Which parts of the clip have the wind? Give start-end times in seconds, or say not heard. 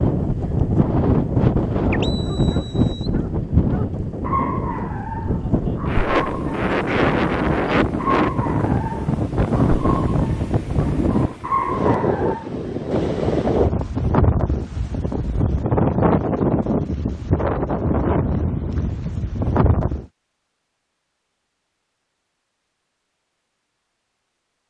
0.0-20.1.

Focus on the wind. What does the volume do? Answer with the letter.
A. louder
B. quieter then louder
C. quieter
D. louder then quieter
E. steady
E.